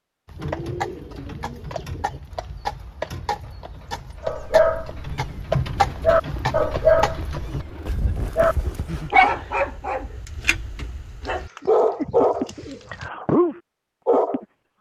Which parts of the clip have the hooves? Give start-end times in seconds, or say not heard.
0.2-9.1.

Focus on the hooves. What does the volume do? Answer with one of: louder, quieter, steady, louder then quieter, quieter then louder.
louder then quieter.